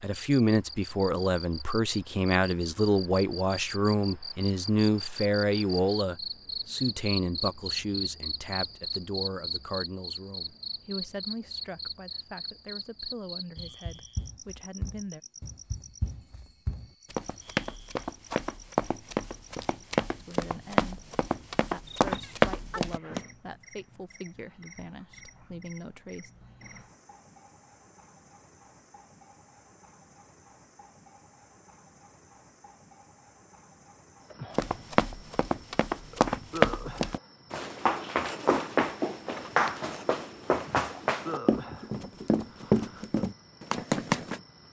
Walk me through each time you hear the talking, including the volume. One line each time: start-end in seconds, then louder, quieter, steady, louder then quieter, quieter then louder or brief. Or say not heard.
0.0-15.2 quieter
20.1-26.3 steady.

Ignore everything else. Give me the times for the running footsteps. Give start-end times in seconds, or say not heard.
13.6-23.2, 34.5-44.4.